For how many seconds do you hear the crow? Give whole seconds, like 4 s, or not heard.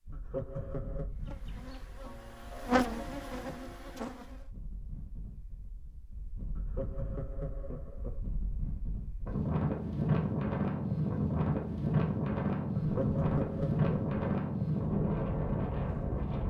not heard.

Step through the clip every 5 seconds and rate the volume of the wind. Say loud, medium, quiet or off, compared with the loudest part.
quiet, medium, loud, loud.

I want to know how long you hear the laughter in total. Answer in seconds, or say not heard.
4 s.